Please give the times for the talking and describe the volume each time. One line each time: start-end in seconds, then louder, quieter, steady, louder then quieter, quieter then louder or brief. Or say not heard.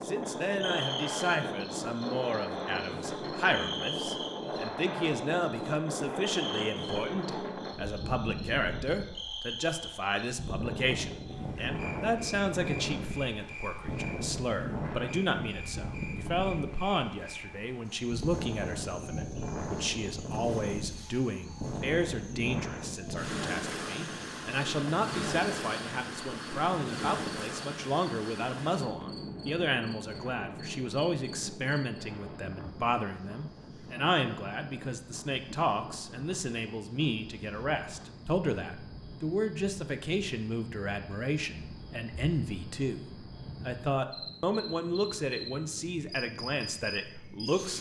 0.0-47.7 steady.